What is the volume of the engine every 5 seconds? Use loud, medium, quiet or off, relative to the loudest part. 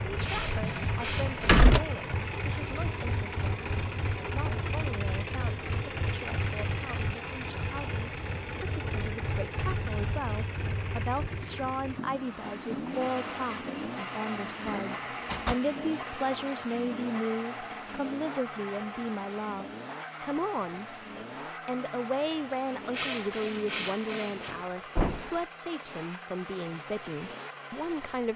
loud, loud, loud, loud, medium, medium.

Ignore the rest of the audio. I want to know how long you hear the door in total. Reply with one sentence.
The door can be heard for 3 seconds in total.